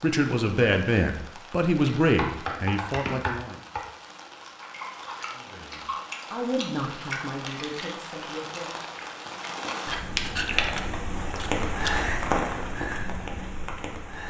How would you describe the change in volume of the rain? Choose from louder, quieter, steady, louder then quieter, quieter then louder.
louder.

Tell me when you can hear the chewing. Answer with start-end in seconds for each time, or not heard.
4.4-12.1.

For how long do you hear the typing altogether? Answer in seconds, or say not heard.
2 s.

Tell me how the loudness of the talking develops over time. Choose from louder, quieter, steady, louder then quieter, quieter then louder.
quieter.